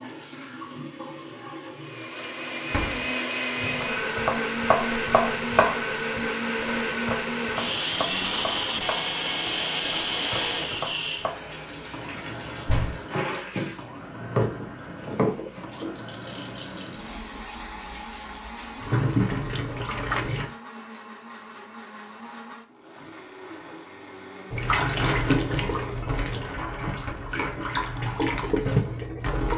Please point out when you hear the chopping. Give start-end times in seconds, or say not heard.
3.8-11.3.